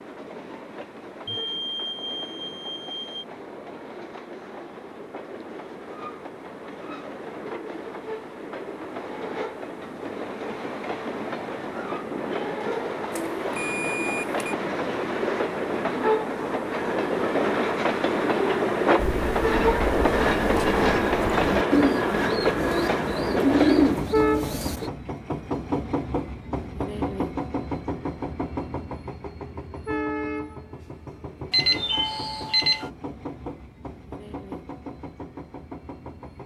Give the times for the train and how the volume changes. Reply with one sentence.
You can hear the train from 0.0 to 36.4 s, getting louder then quieter.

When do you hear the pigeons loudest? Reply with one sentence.
The volume of the pigeons peaks at 24 seconds.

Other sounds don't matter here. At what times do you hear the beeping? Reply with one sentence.
You can hear the beeping from 1.2 to 3.2 s, from 13.1 to 14.6 s and from 31.5 to 32.9 s.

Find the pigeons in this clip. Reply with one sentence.
You can hear the pigeons from 18.9 to 24.9 s.